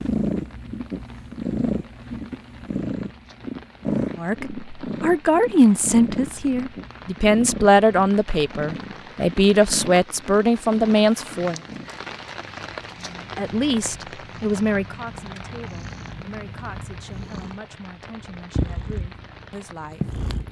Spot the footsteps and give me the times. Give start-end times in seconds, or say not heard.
not heard.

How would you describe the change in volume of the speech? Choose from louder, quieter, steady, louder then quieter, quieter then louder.
quieter.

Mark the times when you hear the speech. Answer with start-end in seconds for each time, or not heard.
4.2-11.6, 13.3-20.4.